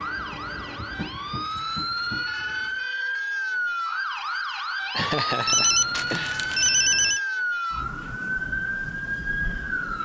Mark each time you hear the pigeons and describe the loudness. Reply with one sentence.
You can't hear the pigeons here.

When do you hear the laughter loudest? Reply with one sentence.
The volume of the laughter peaks at 5 seconds.